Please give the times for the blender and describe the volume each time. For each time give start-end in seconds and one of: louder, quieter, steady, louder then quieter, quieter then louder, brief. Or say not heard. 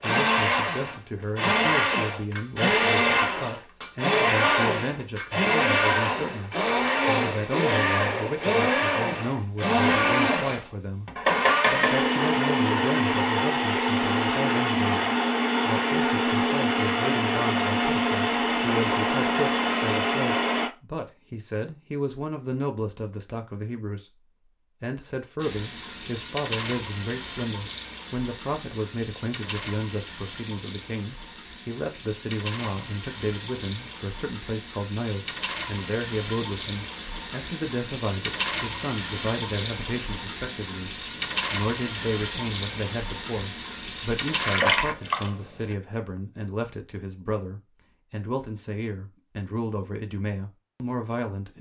0.0-20.7 steady.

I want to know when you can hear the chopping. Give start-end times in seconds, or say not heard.
11.2-12.1.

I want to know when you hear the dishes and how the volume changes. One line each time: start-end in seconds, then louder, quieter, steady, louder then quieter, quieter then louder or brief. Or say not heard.
not heard.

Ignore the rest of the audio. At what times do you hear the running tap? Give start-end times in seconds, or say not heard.
25.4-45.8.